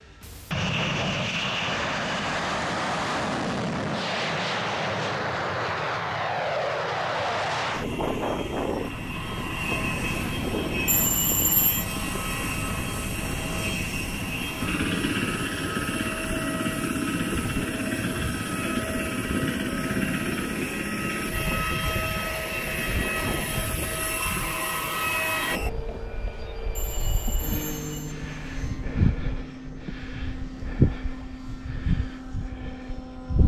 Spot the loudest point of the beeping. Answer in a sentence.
The loudest moment of the beeping is at 11 seconds.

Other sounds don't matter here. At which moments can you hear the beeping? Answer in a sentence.
The beeping can be heard from 10.8 to 11.8 s and from 26.8 to 28.1 s.